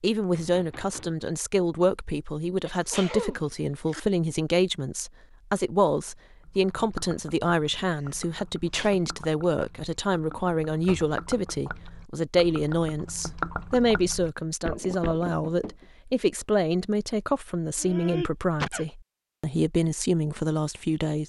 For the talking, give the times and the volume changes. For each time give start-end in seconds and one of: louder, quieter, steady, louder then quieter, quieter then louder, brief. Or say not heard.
0.0-21.2 steady.